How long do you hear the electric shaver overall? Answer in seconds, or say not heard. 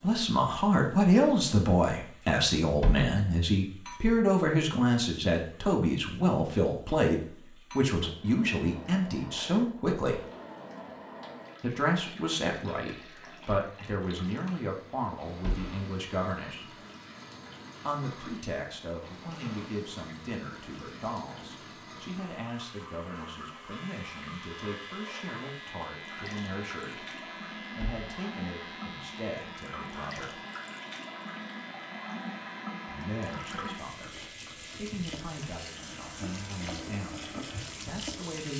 15 s.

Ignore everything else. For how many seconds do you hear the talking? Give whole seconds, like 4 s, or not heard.
33 s.